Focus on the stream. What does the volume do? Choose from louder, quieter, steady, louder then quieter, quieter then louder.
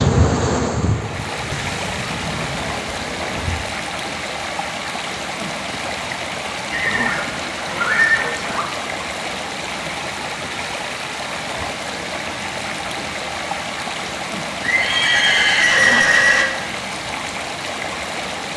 steady.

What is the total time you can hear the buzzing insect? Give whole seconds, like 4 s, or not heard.
4 s.